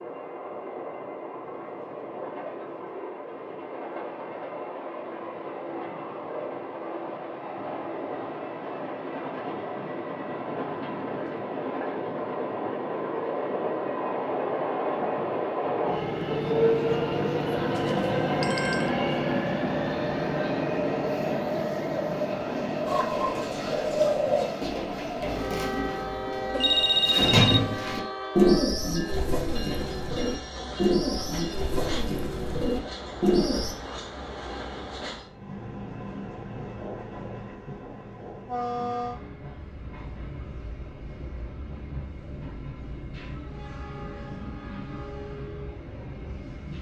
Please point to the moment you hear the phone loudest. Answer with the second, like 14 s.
27 s.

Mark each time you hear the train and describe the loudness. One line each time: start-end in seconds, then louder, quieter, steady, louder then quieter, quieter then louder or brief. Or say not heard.
0.0-46.7 louder then quieter.